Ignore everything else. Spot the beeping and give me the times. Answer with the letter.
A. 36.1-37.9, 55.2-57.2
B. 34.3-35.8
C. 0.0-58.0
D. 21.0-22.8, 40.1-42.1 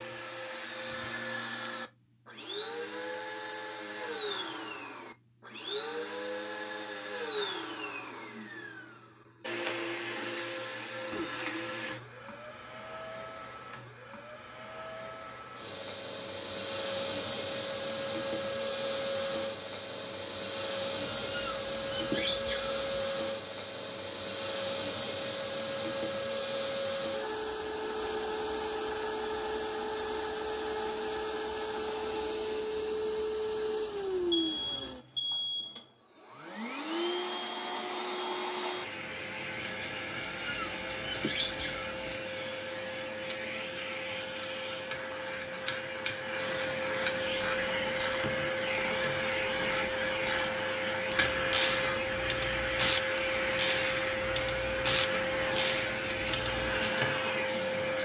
B.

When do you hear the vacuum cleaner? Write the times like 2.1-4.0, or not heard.
0.0-58.0.